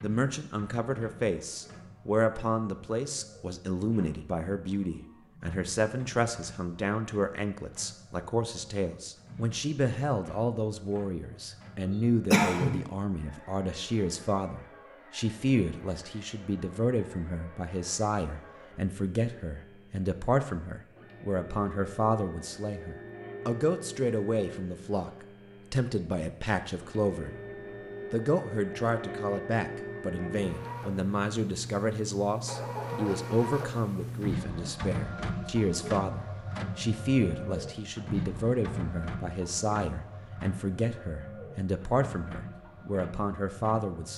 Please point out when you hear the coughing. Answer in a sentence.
The coughing can be heard from 11.8 to 12.8 s.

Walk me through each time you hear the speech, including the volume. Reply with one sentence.
The speech can be heard from 0.0 to 27.4 s, at a steady volume; and from 28.1 to 44.1 s, at a steady volume.